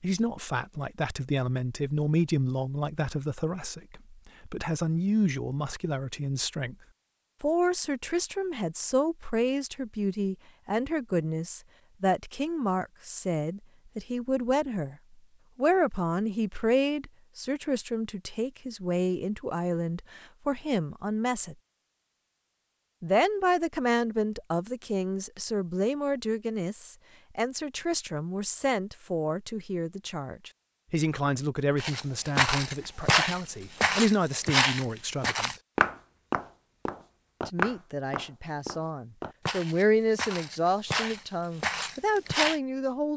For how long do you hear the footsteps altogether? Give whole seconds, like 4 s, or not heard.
11 s.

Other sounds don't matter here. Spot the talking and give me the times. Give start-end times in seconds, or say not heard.
0.0-6.8, 7.4-14.9, 15.6-21.6, 23.0-35.5, 37.5-43.1.